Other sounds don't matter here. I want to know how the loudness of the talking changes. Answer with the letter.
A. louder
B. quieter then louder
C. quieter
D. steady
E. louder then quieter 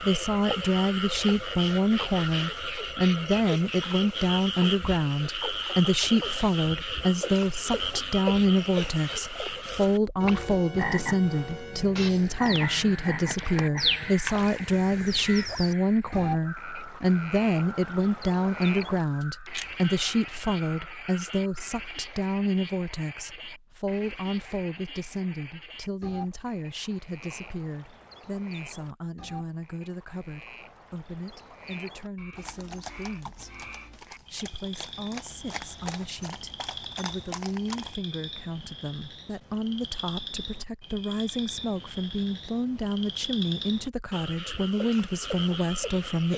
B.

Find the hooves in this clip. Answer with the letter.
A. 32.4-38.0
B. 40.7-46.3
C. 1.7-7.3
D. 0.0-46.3
A.